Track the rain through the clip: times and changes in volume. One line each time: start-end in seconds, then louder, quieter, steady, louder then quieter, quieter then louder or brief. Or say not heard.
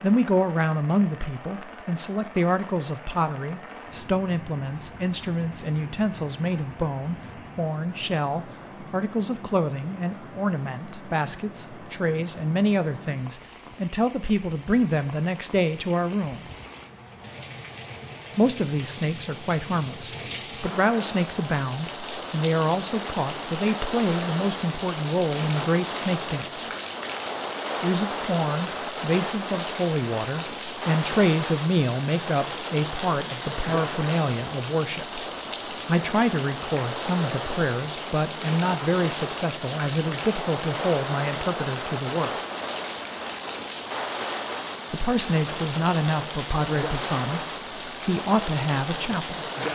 0.0-49.6 louder.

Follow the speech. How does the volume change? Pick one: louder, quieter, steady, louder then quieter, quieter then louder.
steady.